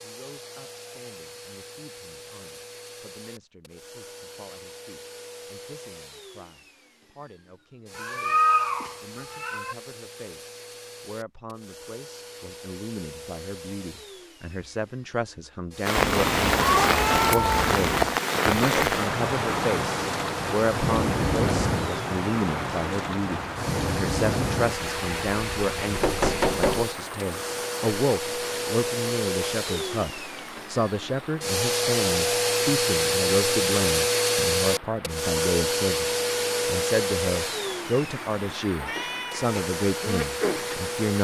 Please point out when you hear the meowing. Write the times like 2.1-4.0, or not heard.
8.0-9.8, 15.9-18.2, 38.8-39.5.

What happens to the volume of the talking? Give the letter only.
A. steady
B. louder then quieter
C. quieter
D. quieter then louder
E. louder
E.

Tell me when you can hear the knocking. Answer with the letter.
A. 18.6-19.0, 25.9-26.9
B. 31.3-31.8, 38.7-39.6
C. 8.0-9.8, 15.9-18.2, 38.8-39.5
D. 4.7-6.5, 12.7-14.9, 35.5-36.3
A.